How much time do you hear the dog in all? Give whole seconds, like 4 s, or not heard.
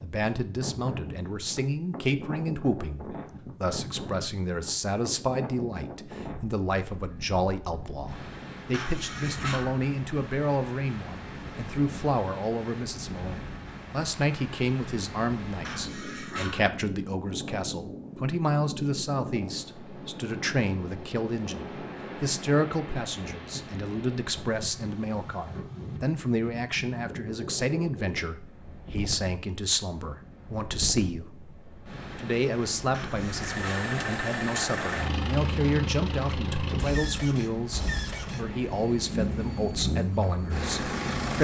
3 s.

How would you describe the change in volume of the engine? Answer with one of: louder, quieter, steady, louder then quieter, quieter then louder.
steady.